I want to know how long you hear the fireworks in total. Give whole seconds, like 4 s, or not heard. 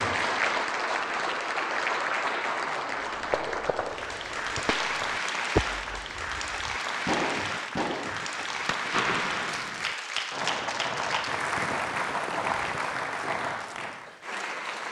11 s.